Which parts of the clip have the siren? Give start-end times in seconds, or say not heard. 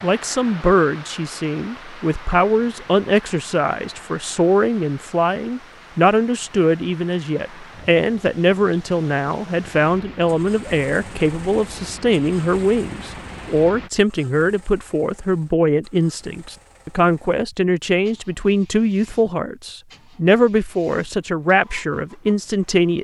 not heard.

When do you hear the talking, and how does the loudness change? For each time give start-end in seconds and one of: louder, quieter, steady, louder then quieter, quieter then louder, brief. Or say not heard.
0.0-22.9 steady.